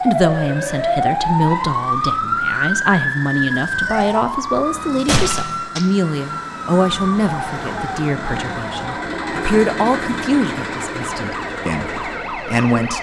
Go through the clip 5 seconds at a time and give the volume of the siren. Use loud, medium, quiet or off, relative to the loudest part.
loud, medium, medium.